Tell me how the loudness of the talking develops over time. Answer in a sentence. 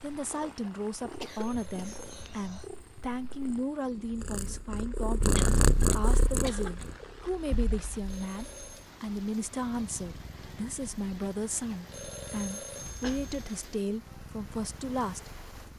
The volume of the talking stays about the same.